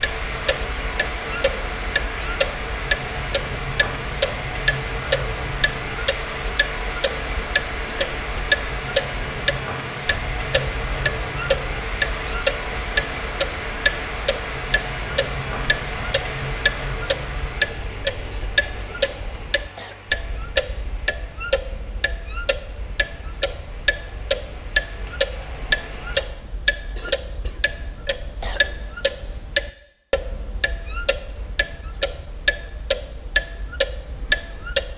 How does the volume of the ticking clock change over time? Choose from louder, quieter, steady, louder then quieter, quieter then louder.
steady.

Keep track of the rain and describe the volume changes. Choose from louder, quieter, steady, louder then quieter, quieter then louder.
quieter.